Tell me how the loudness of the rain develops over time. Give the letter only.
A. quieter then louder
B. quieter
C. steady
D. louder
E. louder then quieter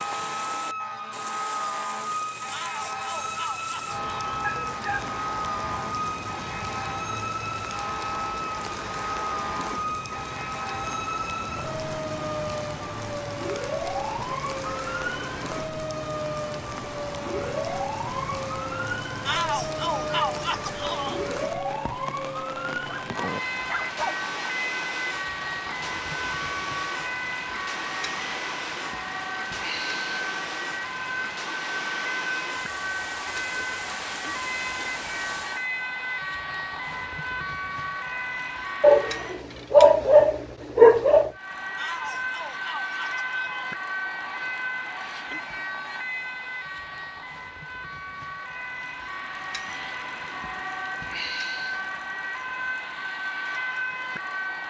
C.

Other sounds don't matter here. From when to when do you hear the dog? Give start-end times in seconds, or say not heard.
4.4-5.2, 23.0-24.2, 38.8-41.3.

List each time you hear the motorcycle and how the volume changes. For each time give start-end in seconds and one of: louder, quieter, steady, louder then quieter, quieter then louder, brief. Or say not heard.
not heard.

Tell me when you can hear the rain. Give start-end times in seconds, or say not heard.
0.0-35.7.